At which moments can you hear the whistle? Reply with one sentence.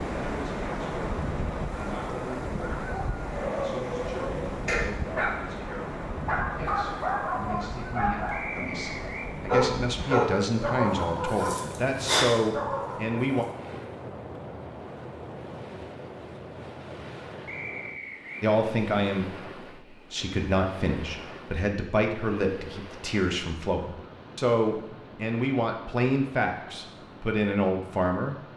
The whistle can be heard from 8.3 to 9.3 s and from 17.4 to 18.4 s.